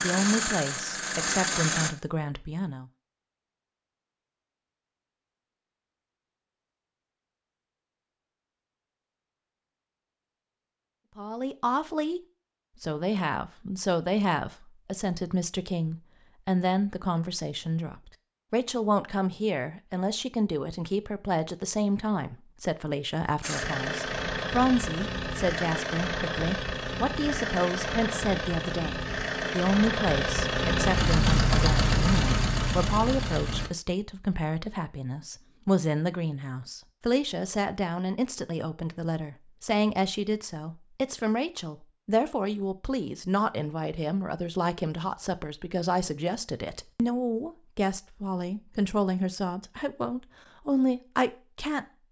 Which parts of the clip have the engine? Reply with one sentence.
The engine can be heard from 0.0 to 1.9 s and from 23.4 to 33.7 s.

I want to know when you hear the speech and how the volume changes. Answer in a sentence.
The speech can be heard briefly from 0.0 to 2.9 s; and from 11.2 to 51.9 s, at a steady volume.